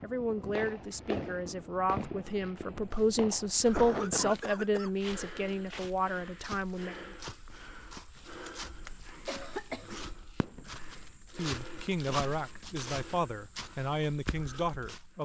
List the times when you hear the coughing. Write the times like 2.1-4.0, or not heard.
3.7-4.9, 9.2-10.4.